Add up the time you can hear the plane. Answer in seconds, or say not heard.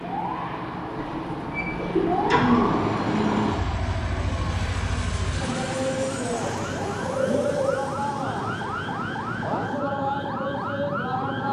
10 s.